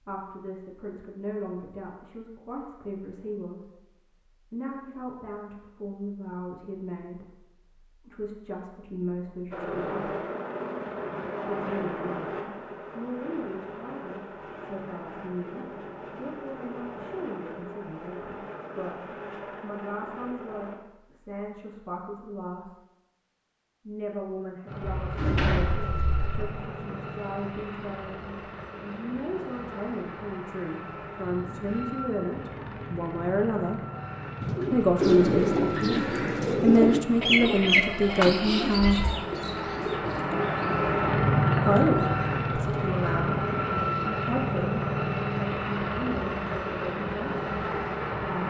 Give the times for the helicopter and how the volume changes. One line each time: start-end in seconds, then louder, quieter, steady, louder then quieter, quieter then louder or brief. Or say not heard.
9.5-20.8 quieter
24.6-48.4 louder.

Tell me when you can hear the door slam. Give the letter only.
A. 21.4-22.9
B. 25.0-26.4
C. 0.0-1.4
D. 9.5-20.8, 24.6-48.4
B.